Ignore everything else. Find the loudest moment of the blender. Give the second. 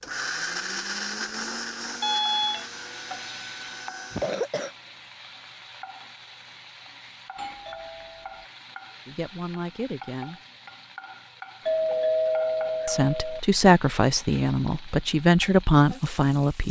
1 s.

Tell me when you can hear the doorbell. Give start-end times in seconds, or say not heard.
2.0-2.6, 7.3-8.4, 11.7-13.4.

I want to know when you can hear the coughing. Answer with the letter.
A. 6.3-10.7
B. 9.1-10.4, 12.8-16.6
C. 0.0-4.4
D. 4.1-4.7
D.